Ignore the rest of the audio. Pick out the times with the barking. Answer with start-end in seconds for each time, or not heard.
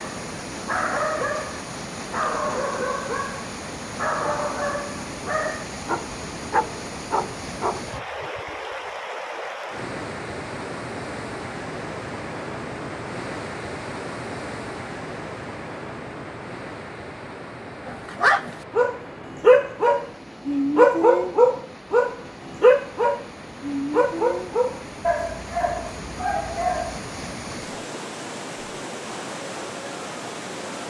0.0-7.9, 17.9-27.0.